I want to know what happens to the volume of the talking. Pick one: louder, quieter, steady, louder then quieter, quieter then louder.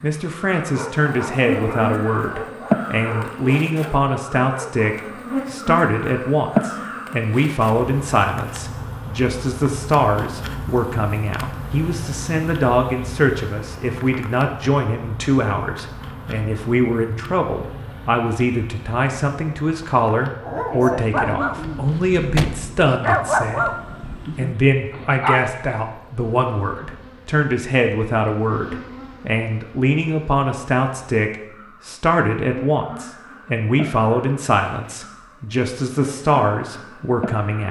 steady.